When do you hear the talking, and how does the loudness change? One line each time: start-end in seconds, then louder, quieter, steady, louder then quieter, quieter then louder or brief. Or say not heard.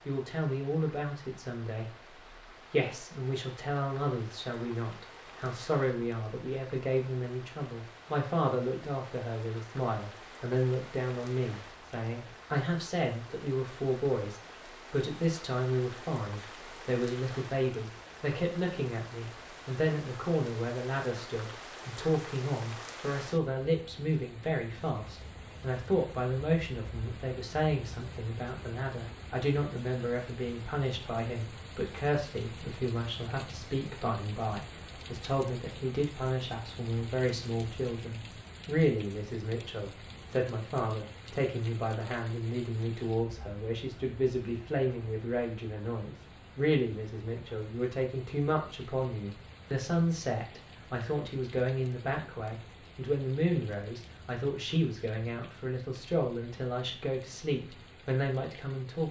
0.1-59.0 steady.